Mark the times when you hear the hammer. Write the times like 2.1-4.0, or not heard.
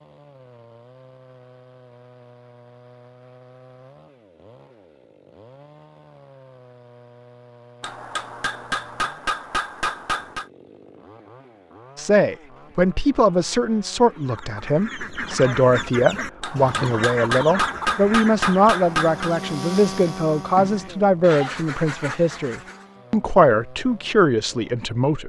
7.8-10.4, 16.4-19.4.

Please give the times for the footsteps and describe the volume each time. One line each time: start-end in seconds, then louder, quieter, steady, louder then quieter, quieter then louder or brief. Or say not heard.
not heard.